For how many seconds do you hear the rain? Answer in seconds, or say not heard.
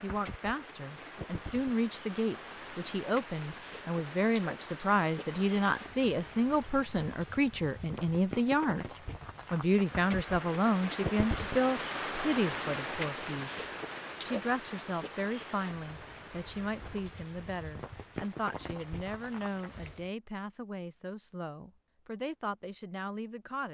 20 s.